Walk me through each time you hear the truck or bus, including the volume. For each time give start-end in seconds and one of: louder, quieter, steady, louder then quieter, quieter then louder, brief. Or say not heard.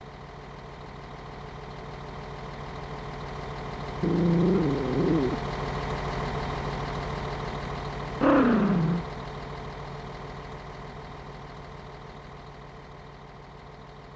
0.0-14.1 louder then quieter.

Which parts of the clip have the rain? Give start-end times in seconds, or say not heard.
not heard.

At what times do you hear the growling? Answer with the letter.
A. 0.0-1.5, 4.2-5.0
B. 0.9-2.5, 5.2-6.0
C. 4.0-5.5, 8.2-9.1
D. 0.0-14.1
C.